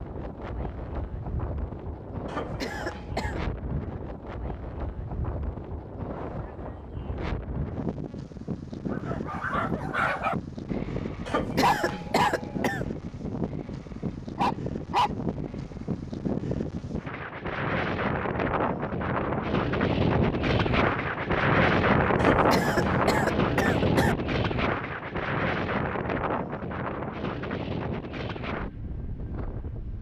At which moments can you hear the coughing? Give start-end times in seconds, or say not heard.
2.2-3.4, 11.2-12.9, 22.1-24.1.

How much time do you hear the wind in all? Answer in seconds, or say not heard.
30 s.